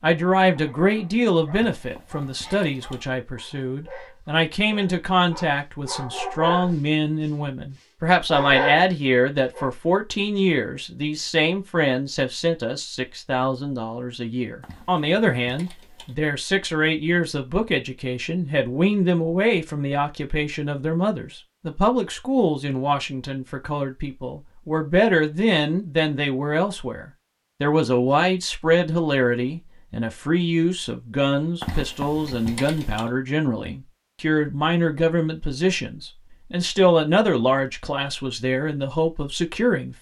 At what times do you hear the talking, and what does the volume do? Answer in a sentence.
The talking can be heard from 0.0 to 39.9 s, at a steady volume.